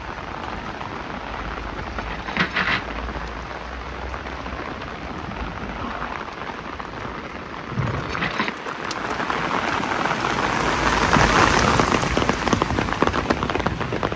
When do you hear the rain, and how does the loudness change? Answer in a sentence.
You can hear the rain from 0.0 to 14.1 s, getting louder.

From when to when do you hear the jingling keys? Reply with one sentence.
The jingling keys can be heard from 1.9 to 3.5 s and from 7.9 to 8.6 s.